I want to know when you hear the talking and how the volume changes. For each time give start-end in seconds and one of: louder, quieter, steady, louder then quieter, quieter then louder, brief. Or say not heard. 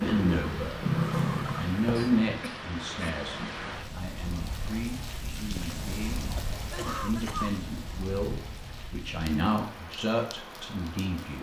0.0-0.8 brief
1.6-11.3 quieter then louder.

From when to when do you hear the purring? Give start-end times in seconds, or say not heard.
0.0-2.3.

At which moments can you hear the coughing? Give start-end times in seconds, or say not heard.
1.9-3.2, 6.3-7.5.